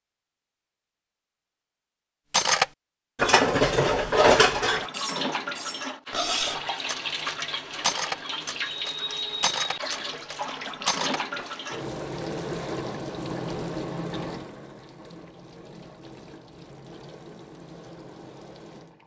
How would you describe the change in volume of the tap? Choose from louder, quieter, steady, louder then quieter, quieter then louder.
quieter.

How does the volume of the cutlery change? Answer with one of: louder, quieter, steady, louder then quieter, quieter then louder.
quieter.